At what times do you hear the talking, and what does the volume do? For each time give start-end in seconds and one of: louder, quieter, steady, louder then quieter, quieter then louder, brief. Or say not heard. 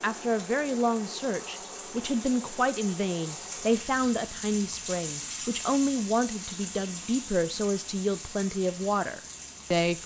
0.0-10.0 steady.